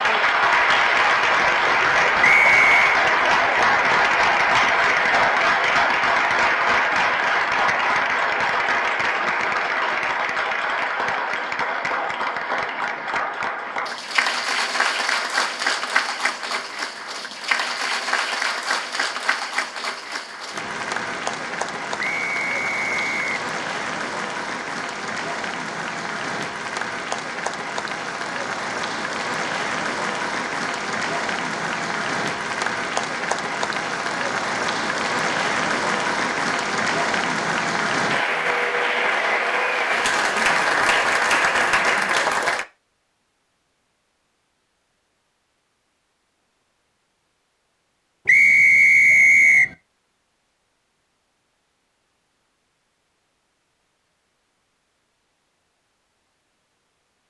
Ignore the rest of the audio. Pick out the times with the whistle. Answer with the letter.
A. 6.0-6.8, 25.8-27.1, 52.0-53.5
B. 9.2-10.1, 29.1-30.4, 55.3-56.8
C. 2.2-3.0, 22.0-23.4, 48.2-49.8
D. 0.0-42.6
C.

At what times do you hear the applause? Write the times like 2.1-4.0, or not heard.
0.0-42.6.